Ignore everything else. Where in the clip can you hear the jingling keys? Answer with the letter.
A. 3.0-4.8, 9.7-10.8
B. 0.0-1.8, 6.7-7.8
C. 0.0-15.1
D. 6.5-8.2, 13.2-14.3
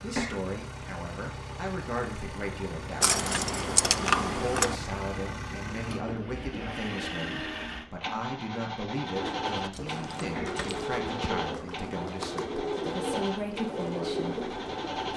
A.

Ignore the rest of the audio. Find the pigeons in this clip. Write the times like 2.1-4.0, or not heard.
9.1-15.1.